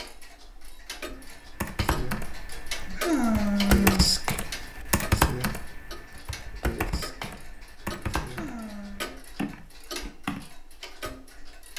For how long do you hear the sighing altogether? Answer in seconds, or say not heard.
2 s.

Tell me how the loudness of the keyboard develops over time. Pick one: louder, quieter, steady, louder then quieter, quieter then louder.
louder then quieter.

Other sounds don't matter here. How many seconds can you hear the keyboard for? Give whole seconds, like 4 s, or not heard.
9 s.